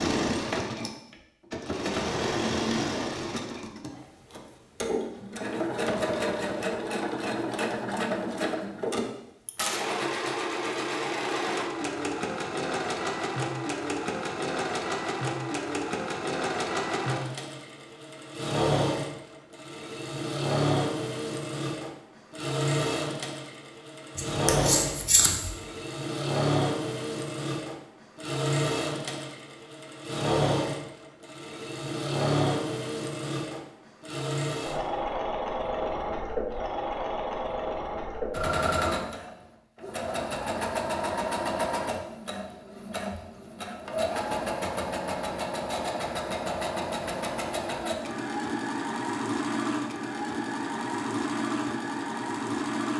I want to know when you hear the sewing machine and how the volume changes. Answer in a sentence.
The sewing machine can be heard from 0.0 to 52.9 s, at a steady volume.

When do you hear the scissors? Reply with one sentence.
The scissors can be heard from 24.1 to 25.6 s.